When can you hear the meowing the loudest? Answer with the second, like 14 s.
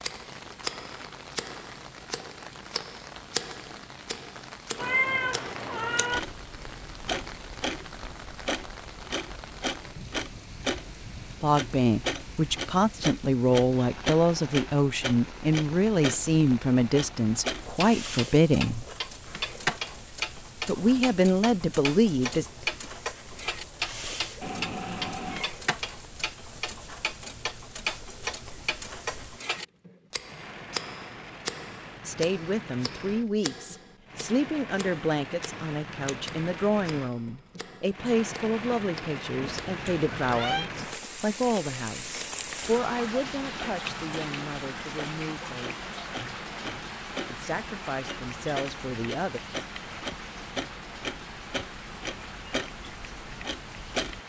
5 s.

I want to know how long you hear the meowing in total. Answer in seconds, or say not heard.
4 s.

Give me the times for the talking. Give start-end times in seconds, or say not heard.
11.4-18.9, 20.6-22.5, 32.0-45.8, 47.3-49.4.